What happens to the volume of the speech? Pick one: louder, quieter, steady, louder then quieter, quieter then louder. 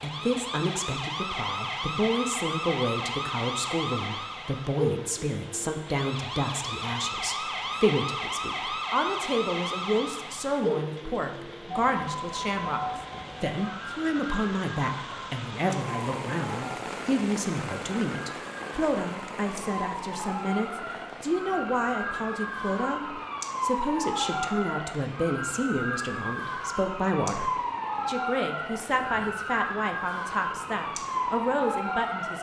steady.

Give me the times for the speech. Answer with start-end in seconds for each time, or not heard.
0.0-32.3.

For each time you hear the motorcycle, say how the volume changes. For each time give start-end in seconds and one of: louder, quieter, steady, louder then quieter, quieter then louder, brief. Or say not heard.
not heard.